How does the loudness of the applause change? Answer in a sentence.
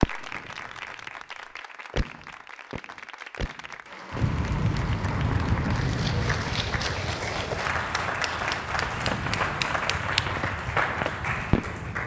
The volume of the applause goes up.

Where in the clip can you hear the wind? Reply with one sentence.
You can hear the wind from 4.1 to 12.0 s.